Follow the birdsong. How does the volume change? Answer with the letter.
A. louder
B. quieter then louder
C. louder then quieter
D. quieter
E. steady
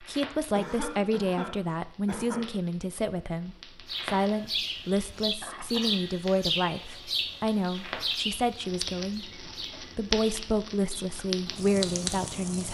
D.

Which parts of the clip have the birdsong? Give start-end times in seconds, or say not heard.
3.9-12.7.